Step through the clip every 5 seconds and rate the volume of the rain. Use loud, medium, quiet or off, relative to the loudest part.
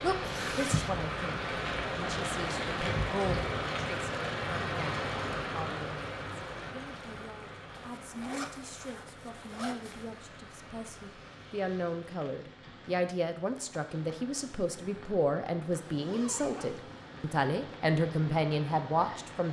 loud, medium, quiet, quiet.